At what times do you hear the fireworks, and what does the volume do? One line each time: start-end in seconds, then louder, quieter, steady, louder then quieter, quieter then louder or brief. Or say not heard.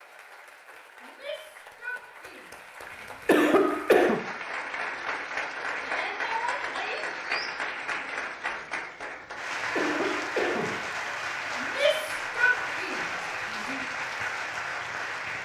not heard.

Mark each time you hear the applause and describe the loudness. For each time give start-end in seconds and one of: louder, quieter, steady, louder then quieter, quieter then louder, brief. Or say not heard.
0.0-15.4 louder.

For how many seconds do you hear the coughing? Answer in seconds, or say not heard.
2 s.